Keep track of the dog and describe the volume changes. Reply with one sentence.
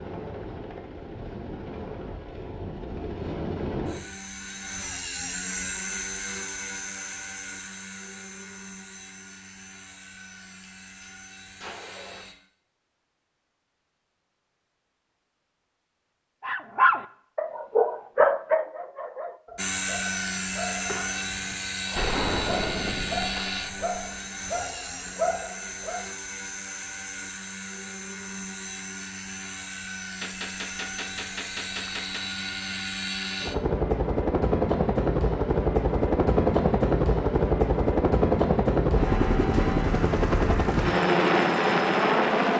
The loudness of the dog goes down, then up.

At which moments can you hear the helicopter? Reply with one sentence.
The helicopter can be heard from 0.0 to 12.3 s and from 19.6 to 42.5 s.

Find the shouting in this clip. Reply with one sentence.
You can't hear the shouting here.